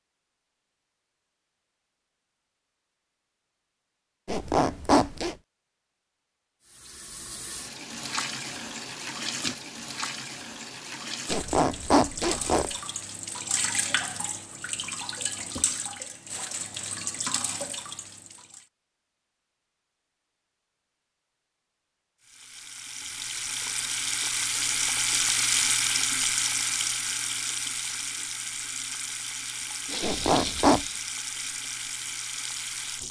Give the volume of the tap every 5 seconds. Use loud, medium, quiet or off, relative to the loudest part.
off, medium, medium, medium, loud, loud, medium.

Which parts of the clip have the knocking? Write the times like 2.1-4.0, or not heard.
not heard.